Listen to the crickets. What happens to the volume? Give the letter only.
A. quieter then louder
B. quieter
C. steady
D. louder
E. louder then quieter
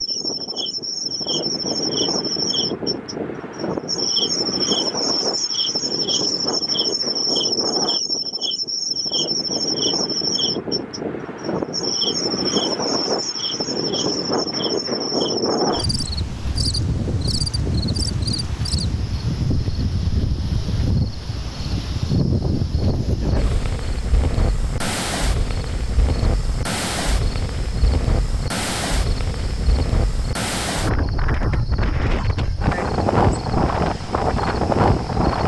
B.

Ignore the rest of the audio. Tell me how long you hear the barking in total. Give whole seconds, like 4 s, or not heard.
not heard.